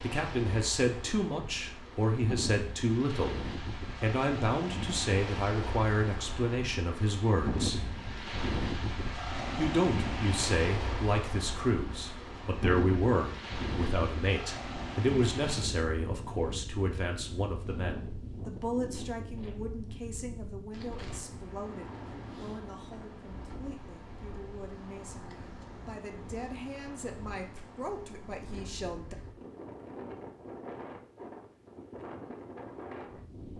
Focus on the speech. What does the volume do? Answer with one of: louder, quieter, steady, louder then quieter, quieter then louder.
quieter.